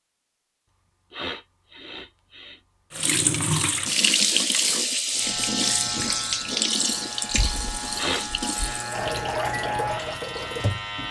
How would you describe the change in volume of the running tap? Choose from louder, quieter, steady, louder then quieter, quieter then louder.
quieter.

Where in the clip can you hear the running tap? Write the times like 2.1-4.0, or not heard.
2.9-11.0.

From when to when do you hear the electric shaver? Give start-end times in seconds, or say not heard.
5.2-11.0.